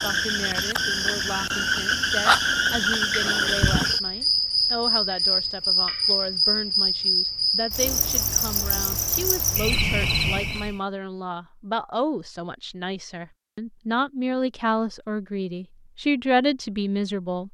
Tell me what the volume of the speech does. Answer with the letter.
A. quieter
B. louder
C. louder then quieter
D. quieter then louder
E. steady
B.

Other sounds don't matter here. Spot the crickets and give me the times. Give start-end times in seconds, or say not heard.
0.0-10.8.